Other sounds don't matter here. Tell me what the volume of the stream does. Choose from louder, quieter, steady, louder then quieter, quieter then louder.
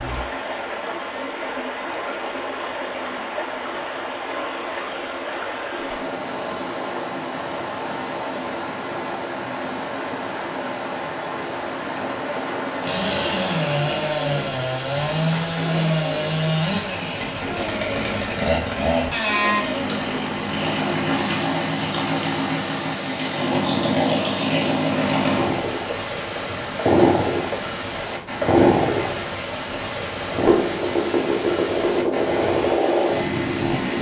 steady.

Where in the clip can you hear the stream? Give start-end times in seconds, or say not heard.
0.0-33.9.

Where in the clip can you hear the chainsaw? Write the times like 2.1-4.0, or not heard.
12.8-33.9.